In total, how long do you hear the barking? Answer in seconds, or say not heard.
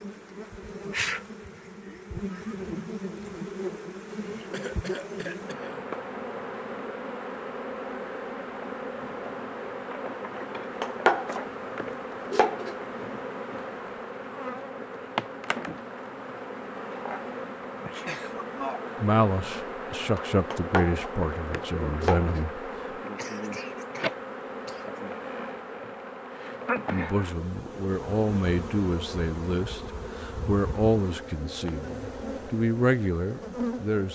not heard.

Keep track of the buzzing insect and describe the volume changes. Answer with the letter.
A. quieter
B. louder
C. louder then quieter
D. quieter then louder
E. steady
E.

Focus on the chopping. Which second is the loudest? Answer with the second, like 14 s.
11 s.